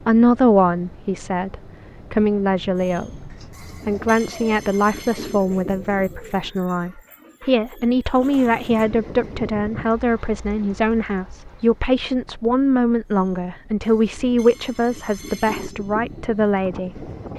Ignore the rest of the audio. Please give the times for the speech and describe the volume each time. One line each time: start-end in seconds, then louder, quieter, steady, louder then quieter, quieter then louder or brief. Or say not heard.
0.1-17.1 steady.